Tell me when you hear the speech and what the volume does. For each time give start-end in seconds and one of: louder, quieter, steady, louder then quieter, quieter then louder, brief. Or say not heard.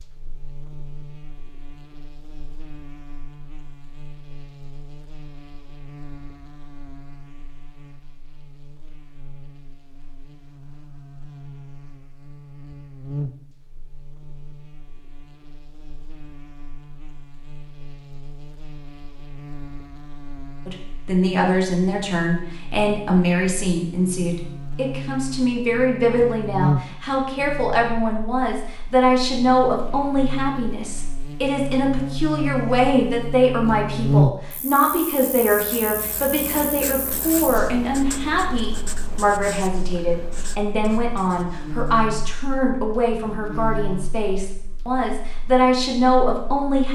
20.6-46.9 steady.